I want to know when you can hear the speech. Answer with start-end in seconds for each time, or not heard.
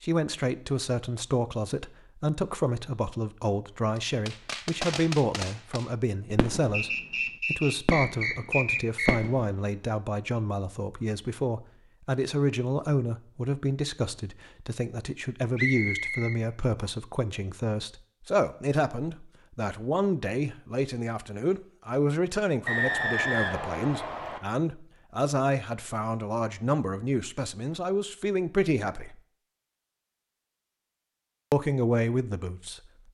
0.0-29.2, 31.5-32.8.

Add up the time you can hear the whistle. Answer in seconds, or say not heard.
6 s.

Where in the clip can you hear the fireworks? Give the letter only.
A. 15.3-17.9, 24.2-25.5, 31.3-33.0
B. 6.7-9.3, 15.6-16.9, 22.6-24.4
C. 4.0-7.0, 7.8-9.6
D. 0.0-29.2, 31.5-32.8
C.